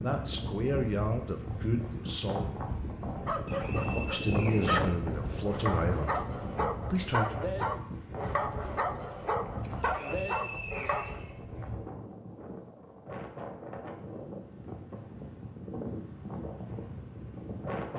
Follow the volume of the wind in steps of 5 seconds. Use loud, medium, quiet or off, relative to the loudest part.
loud, loud, medium, loud.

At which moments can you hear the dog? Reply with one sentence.
You can hear the dog from 3.0 to 11.2 s.